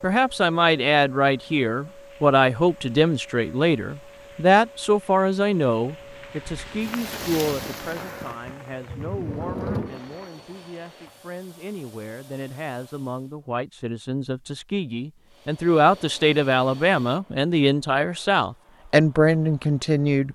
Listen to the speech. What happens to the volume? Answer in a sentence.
The loudness of the speech goes down, then up.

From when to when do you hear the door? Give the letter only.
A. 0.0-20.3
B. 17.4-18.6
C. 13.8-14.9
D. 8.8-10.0
D.